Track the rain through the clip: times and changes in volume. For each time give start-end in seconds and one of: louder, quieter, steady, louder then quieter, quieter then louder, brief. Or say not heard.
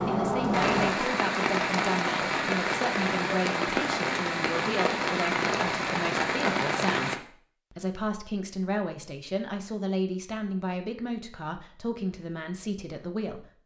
0.0-7.2 steady.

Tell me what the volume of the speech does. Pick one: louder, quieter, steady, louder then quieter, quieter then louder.
steady.